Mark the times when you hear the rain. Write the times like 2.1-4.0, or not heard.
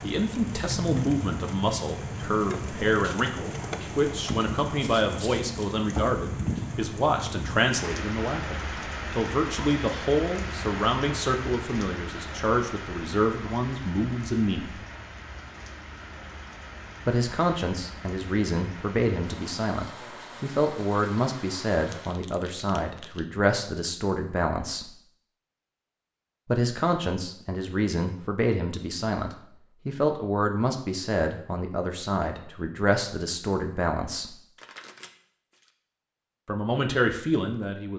0.0-22.2.